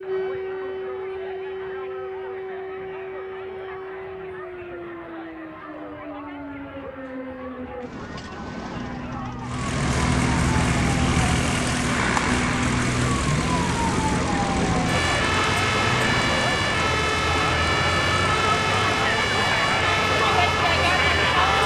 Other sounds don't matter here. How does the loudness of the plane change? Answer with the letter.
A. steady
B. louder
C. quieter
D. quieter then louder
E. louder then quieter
C.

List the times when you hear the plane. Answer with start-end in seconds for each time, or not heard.
9.4-21.6.